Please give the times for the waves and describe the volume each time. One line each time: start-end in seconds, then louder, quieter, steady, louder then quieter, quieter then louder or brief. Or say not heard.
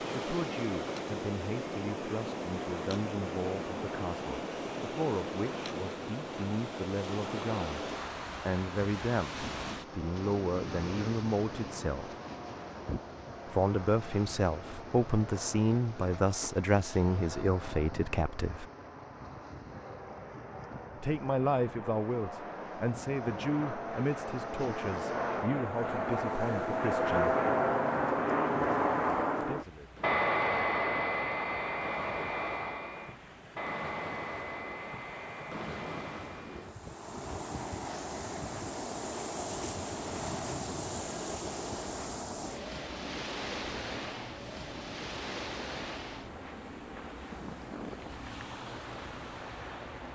0.0-50.1 quieter then louder.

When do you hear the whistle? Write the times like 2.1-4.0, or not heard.
not heard.